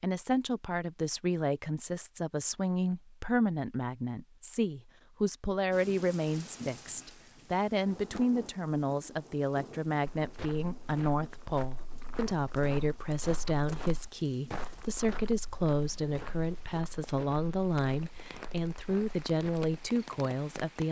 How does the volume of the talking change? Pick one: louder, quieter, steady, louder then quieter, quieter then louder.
steady.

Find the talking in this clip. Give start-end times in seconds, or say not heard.
0.0-20.8.